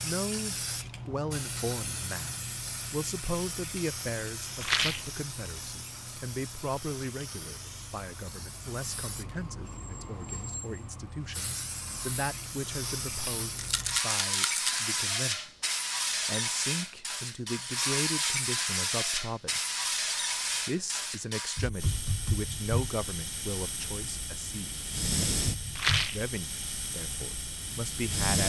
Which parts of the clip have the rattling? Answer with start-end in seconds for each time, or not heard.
4.6-5.1, 13.6-14.8, 25.8-26.2.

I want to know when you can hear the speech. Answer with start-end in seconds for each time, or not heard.
0.0-15.5, 16.2-19.7, 20.6-24.9, 26.1-28.4.